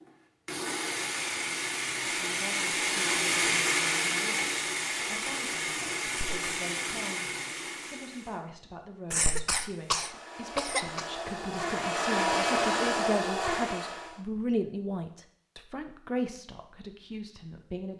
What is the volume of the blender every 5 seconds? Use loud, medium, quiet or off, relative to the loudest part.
loud, medium, loud, off.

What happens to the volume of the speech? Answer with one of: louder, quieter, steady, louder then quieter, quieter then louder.
louder.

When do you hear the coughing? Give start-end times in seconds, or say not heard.
6.0-6.5, 9.1-11.1.